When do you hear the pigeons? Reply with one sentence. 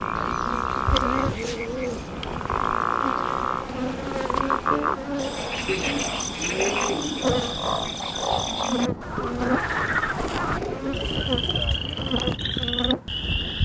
The pigeons can be heard from 0.1 to 2.1 s, from 5.7 to 7.3 s and from 9.2 to 11.7 s.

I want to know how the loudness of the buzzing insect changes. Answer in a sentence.
The volume of the buzzing insect stays about the same.